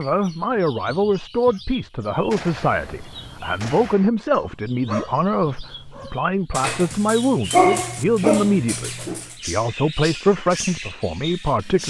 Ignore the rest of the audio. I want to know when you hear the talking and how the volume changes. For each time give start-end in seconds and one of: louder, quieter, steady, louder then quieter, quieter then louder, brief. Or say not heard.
0.0-11.8 steady.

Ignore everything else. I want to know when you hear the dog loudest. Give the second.
8 s.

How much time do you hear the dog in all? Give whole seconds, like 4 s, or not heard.
7 s.